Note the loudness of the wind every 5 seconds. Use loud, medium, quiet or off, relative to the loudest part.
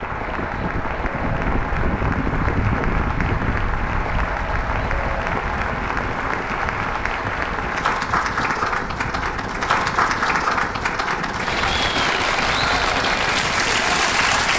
loud, medium, medium.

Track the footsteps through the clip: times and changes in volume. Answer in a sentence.
The footsteps can't be heard in this clip.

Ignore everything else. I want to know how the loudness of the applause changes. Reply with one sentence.
The volume of the applause goes up.